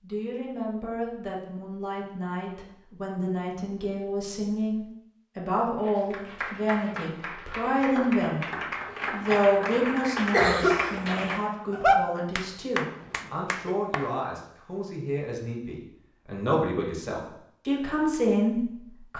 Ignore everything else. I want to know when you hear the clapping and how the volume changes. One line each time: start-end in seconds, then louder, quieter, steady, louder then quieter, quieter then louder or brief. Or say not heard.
5.8-14.1 louder then quieter.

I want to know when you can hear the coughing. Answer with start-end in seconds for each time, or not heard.
9.3-10.9.